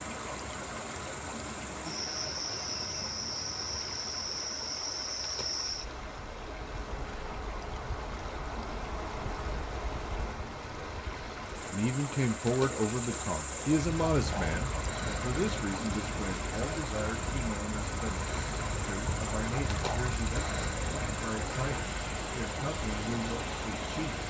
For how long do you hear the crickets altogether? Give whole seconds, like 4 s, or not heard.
24 s.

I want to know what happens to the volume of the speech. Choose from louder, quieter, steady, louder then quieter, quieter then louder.
quieter.